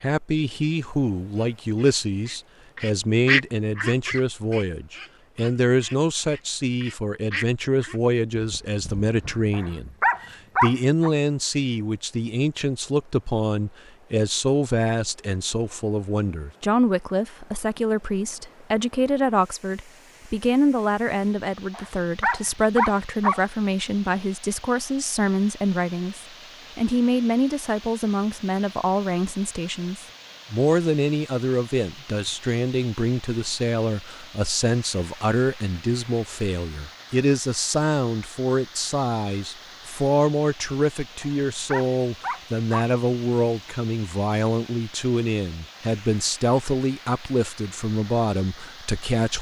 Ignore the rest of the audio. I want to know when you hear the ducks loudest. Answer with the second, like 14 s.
3 s.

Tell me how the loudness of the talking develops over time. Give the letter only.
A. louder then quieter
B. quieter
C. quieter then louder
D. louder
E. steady
E.